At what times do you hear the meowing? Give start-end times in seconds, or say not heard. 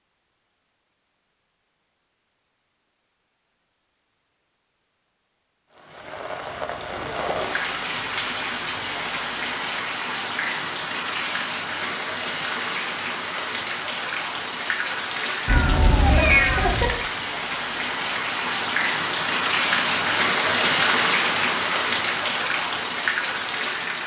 15.4-16.9.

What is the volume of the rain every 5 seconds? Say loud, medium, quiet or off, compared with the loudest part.
off, medium, medium, loud, loud.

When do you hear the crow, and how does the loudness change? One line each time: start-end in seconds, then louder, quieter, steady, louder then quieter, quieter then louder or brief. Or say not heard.
not heard.